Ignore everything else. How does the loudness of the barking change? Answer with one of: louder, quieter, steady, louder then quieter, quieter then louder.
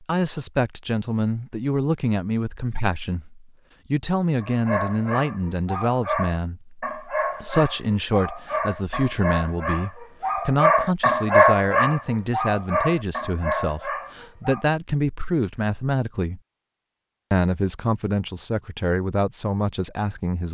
louder then quieter.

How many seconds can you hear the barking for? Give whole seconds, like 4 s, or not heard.
10 s.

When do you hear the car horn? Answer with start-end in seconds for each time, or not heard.
not heard.